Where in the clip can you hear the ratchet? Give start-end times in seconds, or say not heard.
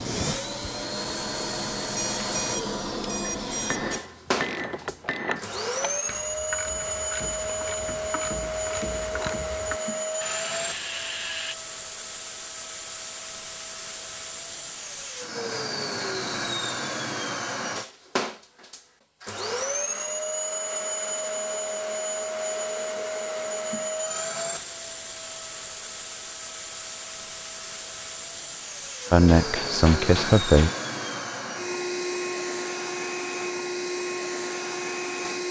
4.3-11.6.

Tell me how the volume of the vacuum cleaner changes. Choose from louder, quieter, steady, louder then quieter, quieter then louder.
steady.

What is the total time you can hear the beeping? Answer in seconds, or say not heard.
2 s.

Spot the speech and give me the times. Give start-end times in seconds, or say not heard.
29.1-30.7.